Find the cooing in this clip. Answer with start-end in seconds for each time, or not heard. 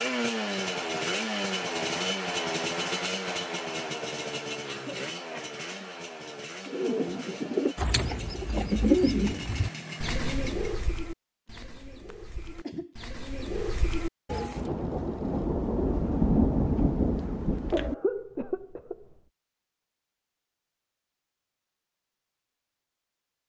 6.7-14.6.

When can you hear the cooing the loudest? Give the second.
9 s.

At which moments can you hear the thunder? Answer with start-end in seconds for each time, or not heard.
14.6-17.9.